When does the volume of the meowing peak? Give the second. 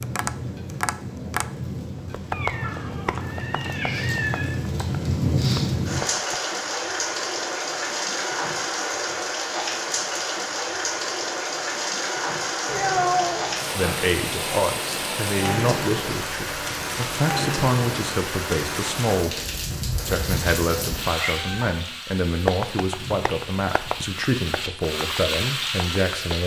13 s.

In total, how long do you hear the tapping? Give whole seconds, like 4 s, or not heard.
10 s.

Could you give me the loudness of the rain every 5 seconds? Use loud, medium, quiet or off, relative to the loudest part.
medium, loud, loud, loud, medium, loud.